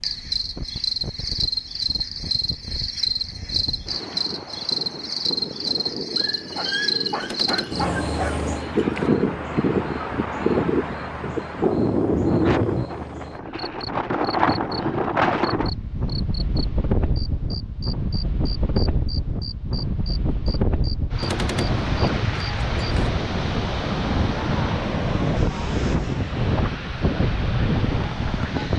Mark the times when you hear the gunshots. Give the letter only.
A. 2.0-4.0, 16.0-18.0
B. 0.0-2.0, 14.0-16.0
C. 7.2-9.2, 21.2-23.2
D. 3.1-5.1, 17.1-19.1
C.